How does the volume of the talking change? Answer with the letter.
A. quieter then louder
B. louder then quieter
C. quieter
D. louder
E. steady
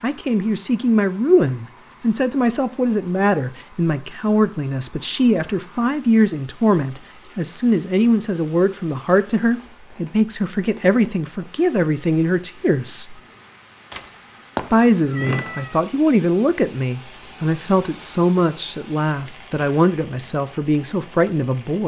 E.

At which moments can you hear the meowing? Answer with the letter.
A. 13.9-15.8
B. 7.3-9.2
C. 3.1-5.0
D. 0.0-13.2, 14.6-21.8
A.